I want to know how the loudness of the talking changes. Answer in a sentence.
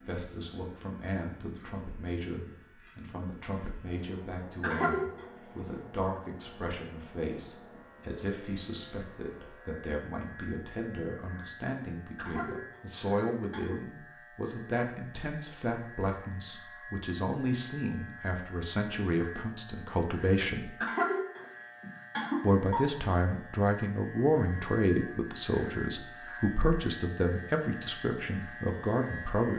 The loudness of the talking goes up.